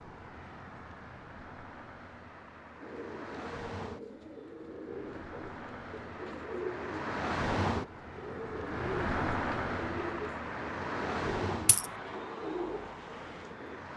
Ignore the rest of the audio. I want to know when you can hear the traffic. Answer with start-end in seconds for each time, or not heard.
0.0-13.9.